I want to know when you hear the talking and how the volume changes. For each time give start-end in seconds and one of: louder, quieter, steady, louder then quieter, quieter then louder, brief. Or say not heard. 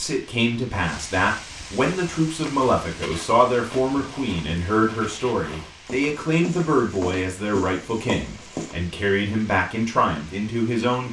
0.0-11.0 steady.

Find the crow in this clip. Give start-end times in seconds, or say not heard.
not heard.